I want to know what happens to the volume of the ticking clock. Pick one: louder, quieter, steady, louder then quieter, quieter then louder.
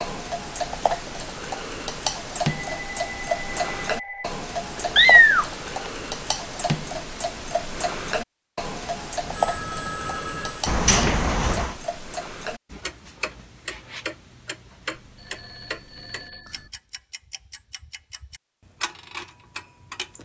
quieter.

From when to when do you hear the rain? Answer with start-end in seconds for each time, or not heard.
not heard.